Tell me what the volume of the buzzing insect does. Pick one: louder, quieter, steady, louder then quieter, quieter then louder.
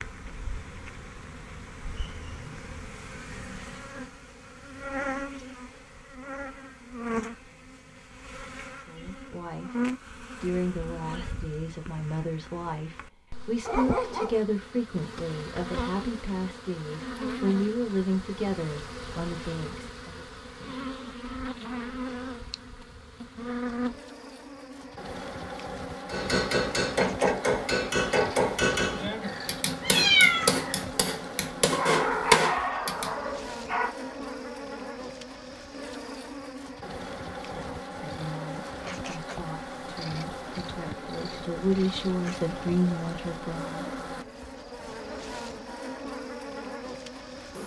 steady.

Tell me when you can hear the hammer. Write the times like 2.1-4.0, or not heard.
26.1-33.1.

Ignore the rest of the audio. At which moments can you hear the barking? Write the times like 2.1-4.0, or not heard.
13.7-14.4, 31.7-34.0.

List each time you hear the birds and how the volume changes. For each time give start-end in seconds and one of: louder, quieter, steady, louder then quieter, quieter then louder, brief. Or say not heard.
not heard.